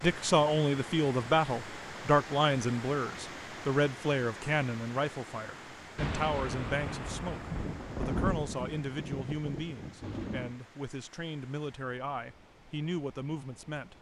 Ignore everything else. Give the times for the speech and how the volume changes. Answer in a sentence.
You can hear the speech from 0.0 to 13.9 s, getting quieter.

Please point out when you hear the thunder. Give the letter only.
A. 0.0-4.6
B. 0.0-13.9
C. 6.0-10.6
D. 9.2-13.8
C.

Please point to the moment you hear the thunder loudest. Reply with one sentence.
The volume of the thunder peaks at 8 seconds.